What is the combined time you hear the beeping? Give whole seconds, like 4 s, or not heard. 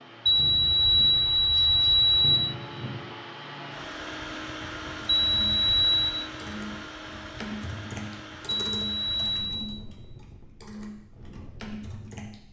4 s.